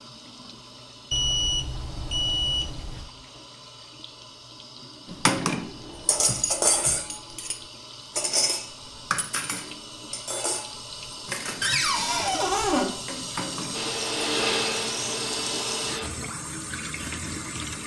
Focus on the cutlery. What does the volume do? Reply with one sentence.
The loudness of the cutlery goes down.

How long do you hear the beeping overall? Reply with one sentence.
The beeping can be heard for 2 seconds in total.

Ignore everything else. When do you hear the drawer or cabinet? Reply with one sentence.
You can hear the drawer or cabinet from 5.7 to 7.0 s and from 11.6 to 12.9 s.